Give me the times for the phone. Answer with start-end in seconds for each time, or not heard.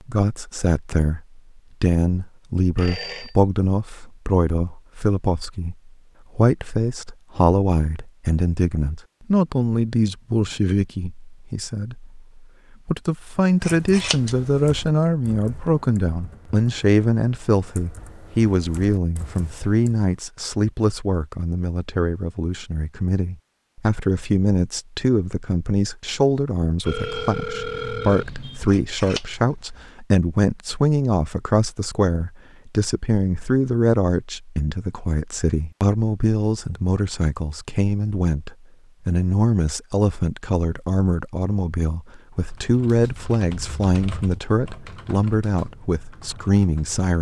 2.8-3.4, 26.9-28.6.